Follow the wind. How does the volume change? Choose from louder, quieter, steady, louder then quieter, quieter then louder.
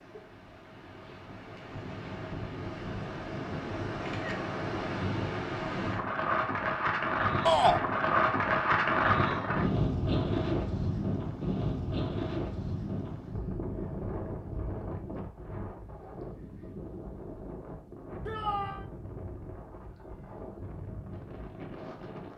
louder then quieter.